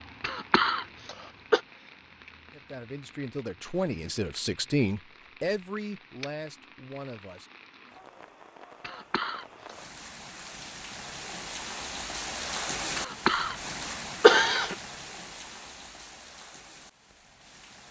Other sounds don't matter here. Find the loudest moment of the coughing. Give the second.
14 s.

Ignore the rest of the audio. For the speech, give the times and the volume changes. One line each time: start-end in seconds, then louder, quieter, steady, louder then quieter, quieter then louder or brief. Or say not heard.
2.5-7.5 louder then quieter.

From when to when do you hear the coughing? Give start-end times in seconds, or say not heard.
0.2-1.6, 8.8-9.9, 12.9-14.8.